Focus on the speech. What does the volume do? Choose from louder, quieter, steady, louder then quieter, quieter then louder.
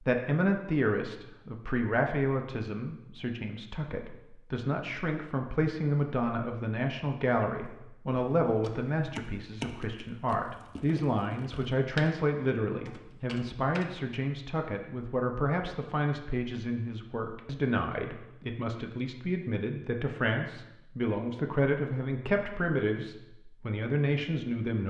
steady.